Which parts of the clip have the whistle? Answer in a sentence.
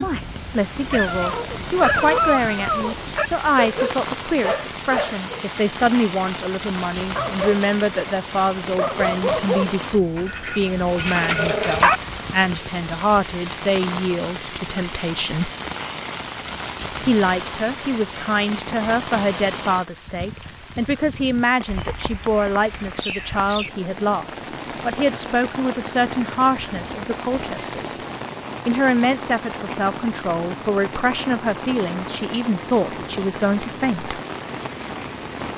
The whistle can't be heard in this clip.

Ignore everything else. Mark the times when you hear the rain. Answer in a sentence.
You can hear the rain from 0.0 to 35.5 s.